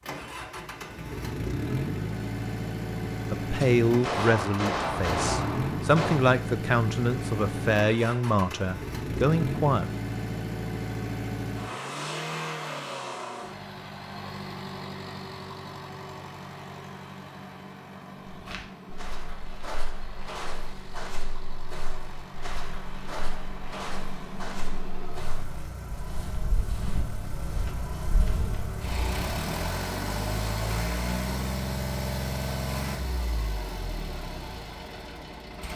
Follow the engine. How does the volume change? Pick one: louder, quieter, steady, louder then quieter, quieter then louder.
quieter then louder.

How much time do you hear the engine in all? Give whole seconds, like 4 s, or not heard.
36 s.